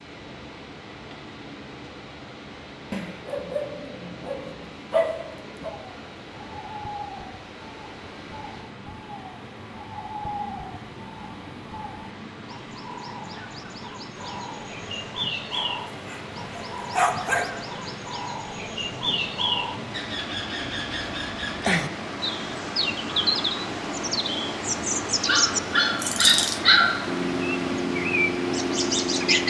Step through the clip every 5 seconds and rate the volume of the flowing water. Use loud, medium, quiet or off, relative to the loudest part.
medium, medium, medium, medium, loud, loud.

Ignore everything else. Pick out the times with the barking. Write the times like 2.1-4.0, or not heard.
2.9-5.8, 15.5-17.5, 25.2-26.9.